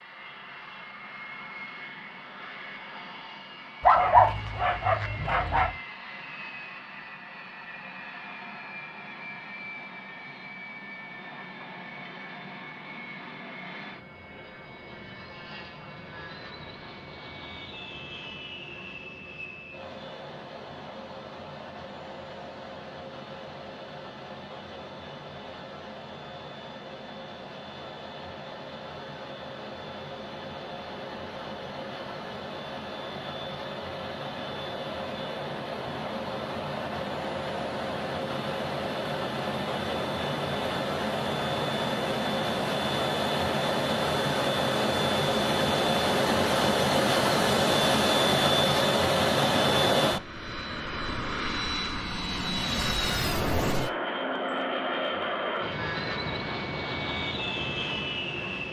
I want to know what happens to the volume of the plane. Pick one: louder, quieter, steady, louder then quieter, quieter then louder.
louder.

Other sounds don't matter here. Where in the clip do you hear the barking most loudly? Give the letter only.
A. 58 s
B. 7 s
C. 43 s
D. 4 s
D.